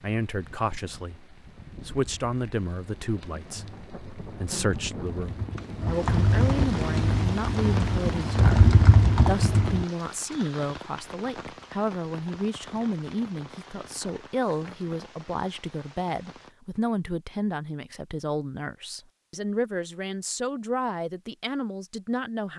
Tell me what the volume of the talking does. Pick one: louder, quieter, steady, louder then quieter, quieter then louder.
steady.